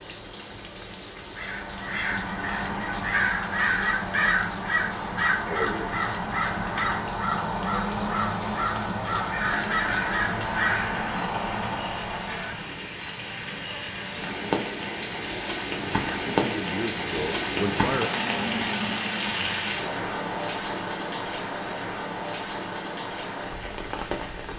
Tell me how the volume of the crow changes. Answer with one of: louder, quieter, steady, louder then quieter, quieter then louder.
steady.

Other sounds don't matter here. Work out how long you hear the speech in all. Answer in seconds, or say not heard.
2 s.